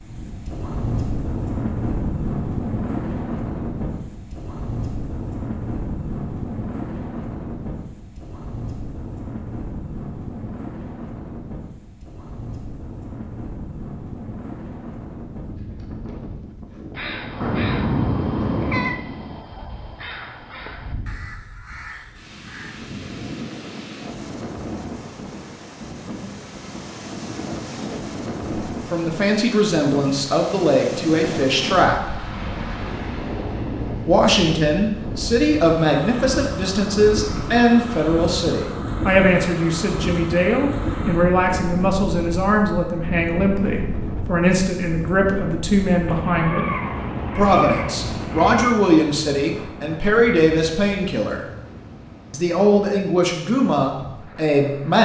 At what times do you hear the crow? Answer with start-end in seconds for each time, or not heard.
16.9-22.9.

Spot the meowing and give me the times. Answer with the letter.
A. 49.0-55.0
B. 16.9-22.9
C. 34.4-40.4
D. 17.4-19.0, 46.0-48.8
D.